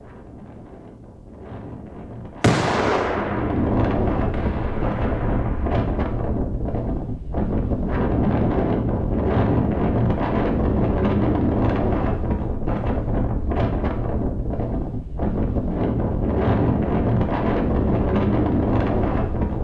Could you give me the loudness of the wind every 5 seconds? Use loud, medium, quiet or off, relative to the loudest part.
medium, loud, loud, loud.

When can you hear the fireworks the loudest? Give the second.
3 s.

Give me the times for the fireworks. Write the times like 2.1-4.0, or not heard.
2.4-5.8.